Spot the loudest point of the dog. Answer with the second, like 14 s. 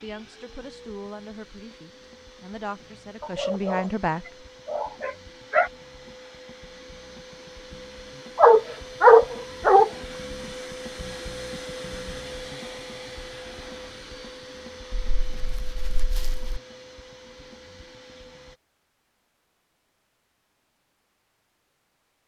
9 s.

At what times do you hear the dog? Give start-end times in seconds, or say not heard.
3.2-3.9, 4.7-5.7, 8.3-9.9, 14.9-16.6.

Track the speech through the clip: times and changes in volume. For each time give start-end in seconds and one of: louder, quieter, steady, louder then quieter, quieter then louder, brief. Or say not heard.
0.0-4.2 quieter then louder.